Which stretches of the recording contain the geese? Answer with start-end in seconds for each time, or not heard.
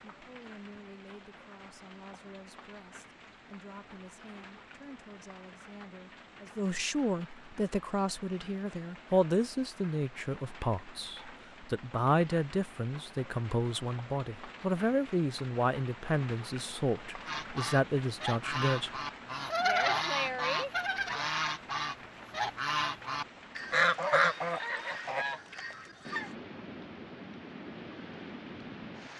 17.2-26.3.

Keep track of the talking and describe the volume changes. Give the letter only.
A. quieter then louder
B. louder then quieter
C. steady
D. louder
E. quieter
D.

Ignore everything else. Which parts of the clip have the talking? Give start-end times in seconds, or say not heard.
0.1-18.9.